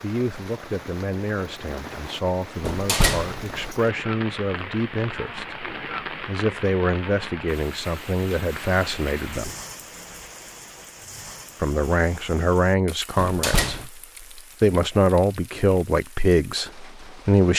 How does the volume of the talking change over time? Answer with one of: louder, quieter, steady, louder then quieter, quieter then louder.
louder.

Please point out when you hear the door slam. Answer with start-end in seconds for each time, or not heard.
2.6-3.5, 13.2-13.8.